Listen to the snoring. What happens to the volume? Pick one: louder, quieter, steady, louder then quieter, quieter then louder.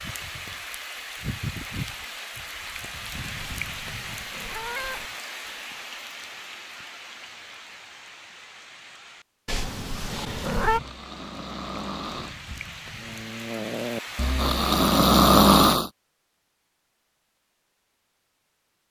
louder.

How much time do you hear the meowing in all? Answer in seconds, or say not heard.
3 s.